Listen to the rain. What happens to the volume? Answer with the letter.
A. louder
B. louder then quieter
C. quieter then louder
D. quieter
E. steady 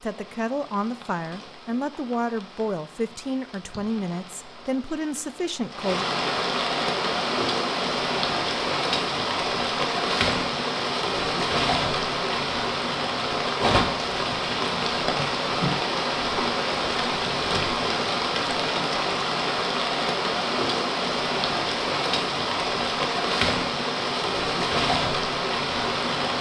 A.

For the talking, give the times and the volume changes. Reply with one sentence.
You can hear the talking from 0.0 to 6.0 s, at a steady volume.